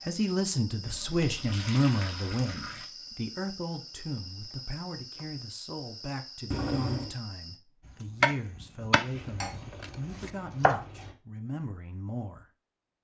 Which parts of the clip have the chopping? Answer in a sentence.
The chopping can be heard from 8.0 to 10.8 s.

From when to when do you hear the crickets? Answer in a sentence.
You can hear the crickets from 0.0 to 7.6 s.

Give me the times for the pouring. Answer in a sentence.
You can hear the pouring from 0.8 to 2.9 s, from 6.5 to 7.2 s and from 9.1 to 11.2 s.